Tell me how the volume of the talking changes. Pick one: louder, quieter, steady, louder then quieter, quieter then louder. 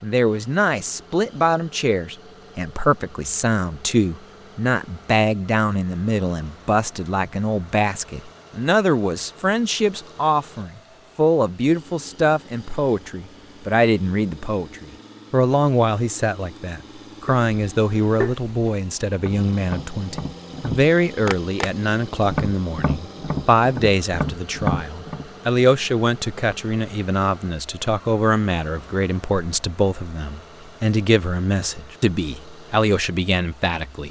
steady.